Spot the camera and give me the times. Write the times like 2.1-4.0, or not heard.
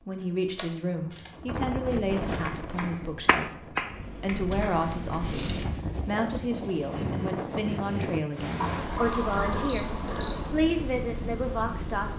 0.6-1.3, 4.9-5.7, 8.6-10.6.